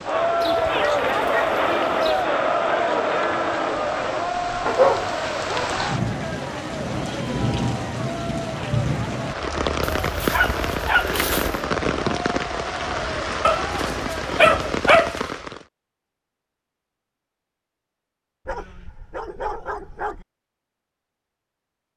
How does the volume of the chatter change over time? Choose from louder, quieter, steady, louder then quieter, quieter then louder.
quieter.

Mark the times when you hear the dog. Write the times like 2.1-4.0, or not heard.
0.4-2.3, 4.7-5.7, 9.8-11.7, 13.4-15.2, 18.4-20.2.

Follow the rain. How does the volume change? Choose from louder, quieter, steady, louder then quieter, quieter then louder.
louder.